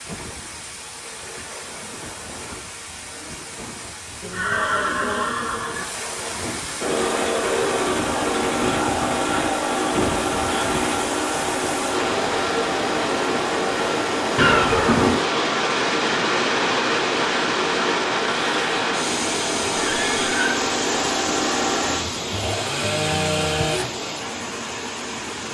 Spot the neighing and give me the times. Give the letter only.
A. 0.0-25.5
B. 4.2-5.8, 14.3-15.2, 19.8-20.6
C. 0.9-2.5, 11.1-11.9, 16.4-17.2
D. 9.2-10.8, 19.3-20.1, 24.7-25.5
B.